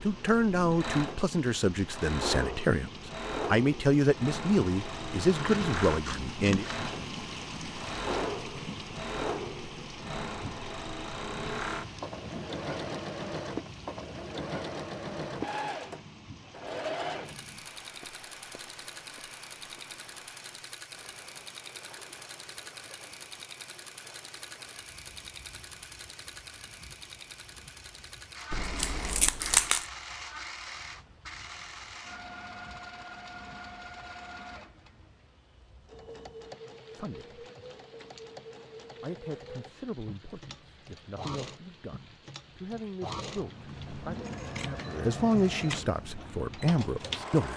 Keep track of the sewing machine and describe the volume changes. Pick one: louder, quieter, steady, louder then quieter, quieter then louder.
quieter.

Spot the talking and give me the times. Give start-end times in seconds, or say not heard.
0.0-6.7, 37.0-37.4, 39.0-47.5.